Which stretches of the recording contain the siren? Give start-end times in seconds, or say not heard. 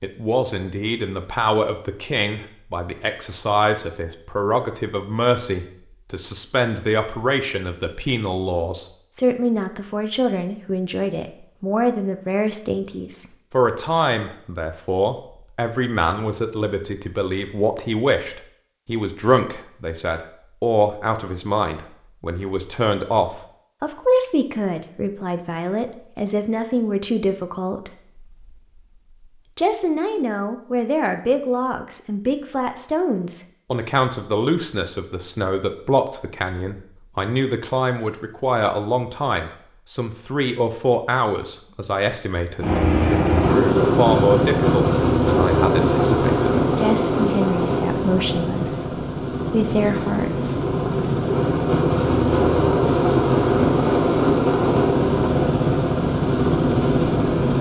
not heard.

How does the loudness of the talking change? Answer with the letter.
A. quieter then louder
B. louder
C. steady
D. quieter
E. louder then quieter
C.